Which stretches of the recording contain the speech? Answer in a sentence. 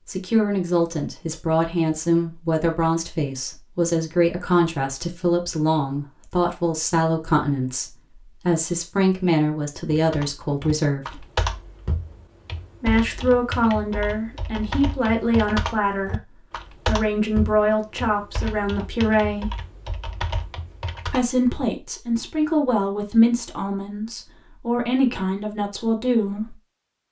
The speech can be heard from 0.1 to 11.2 s, from 12.8 to 19.5 s and from 21.1 to 26.6 s.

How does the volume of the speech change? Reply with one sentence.
The volume of the speech stays about the same.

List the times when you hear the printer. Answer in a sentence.
The printer can't be heard in this clip.